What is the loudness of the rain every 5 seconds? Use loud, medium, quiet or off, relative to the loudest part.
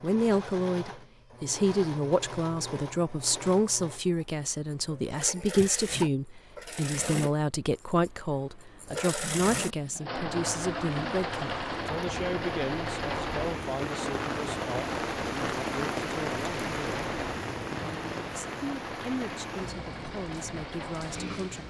off, off, loud, loud, medium.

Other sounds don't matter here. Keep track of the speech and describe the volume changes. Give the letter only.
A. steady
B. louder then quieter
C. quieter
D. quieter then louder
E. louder
C.